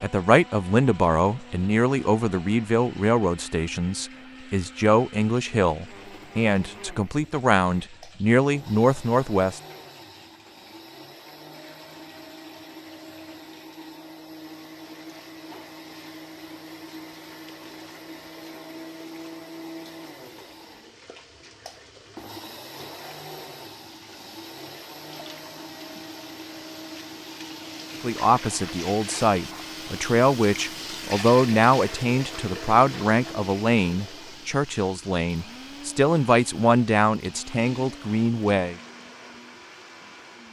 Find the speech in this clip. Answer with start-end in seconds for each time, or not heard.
0.0-9.6, 28.0-38.8.